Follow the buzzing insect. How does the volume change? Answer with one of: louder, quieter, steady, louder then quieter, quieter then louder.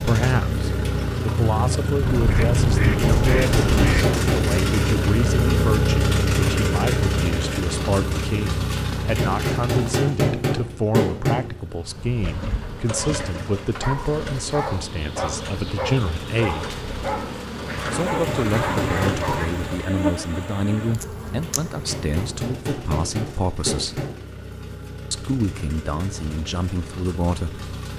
louder.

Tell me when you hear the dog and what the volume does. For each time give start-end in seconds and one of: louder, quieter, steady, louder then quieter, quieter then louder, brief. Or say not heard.
12.2-19.4 steady.